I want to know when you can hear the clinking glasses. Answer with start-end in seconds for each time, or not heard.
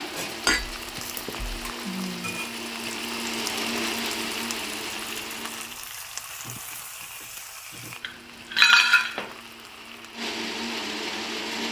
0.5-1.7, 8.0-9.3.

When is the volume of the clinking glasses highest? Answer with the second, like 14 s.
9 s.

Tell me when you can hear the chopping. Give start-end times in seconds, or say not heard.
not heard.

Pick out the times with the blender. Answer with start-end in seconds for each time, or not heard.
0.0-5.9, 7.8-11.6.